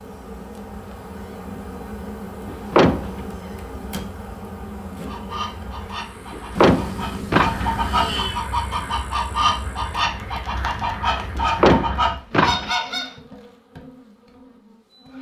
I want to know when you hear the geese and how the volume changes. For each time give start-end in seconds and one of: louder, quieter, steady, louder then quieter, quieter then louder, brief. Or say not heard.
5.0-13.2 louder.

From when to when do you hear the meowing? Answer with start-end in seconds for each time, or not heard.
6.5-8.4.